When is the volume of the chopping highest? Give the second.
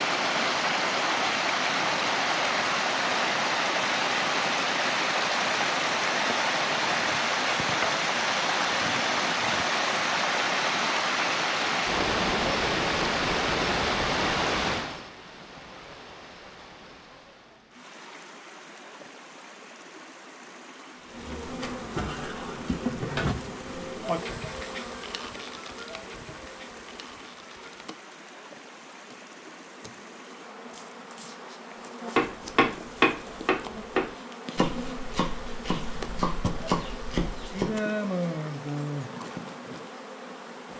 33 s.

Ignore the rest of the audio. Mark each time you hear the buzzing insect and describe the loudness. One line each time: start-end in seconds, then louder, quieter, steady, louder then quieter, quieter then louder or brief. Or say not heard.
21.1-40.7 quieter then louder.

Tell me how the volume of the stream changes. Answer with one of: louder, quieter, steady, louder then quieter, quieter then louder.
quieter.